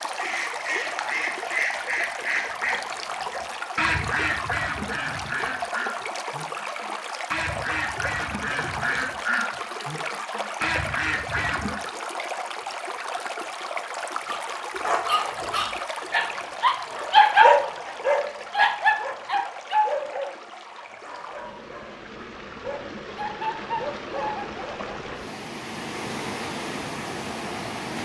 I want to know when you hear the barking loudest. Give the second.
17 s.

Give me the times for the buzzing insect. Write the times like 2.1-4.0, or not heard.
not heard.